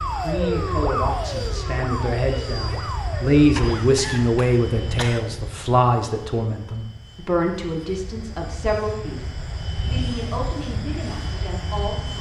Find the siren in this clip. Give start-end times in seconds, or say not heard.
0.0-3.9.